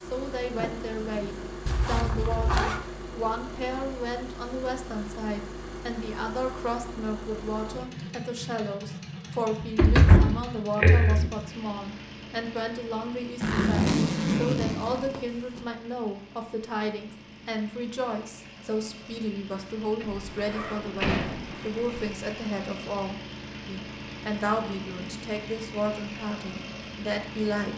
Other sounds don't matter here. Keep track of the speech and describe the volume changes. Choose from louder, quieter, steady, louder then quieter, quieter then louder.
steady.